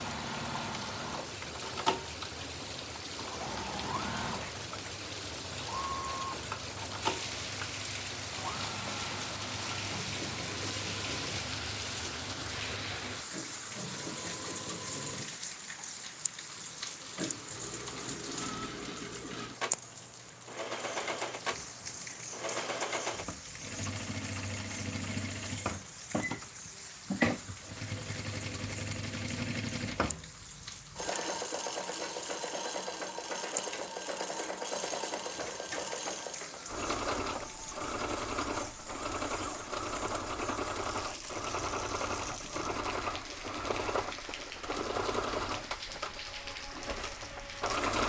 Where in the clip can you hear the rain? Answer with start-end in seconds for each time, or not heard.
0.0-48.0.